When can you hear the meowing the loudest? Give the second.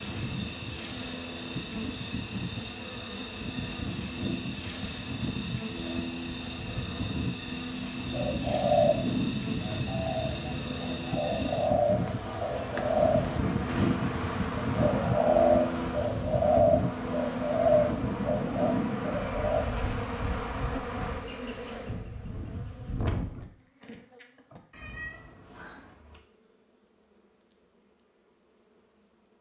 25 s.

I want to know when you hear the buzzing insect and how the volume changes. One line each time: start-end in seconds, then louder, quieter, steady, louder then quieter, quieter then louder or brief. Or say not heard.
0.0-29.3 quieter.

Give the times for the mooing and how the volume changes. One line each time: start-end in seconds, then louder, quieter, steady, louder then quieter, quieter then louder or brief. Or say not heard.
not heard.